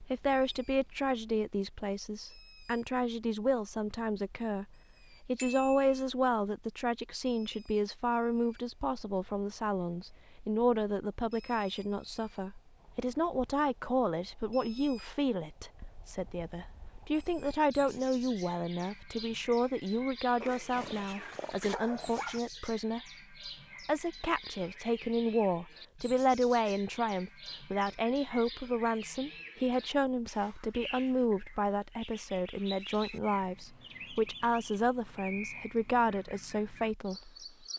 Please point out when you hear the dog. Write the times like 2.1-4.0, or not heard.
20.4-22.4.